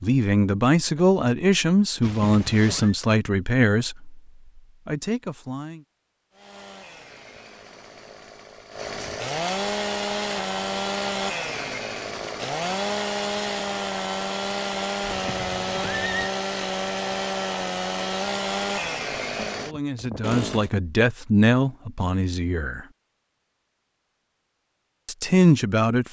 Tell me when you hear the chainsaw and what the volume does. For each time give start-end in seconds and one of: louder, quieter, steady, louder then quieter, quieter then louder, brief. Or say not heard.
6.3-20.7 louder.